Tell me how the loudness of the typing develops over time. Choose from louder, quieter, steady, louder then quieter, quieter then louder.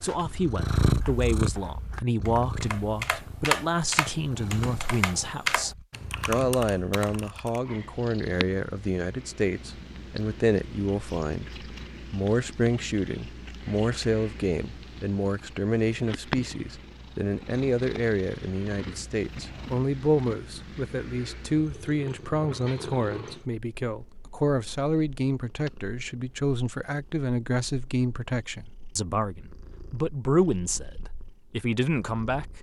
louder then quieter.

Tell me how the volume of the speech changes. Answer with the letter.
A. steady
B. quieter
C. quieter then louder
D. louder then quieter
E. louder
A.